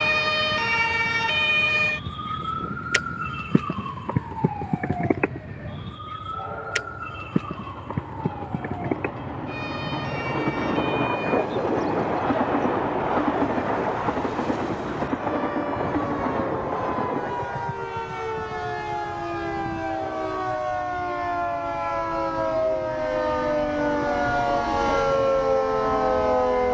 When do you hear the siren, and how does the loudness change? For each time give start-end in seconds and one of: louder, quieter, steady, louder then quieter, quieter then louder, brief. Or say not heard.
0.0-26.6 quieter then louder.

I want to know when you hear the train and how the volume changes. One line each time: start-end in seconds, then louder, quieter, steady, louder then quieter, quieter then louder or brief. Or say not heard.
0.0-26.6 louder then quieter.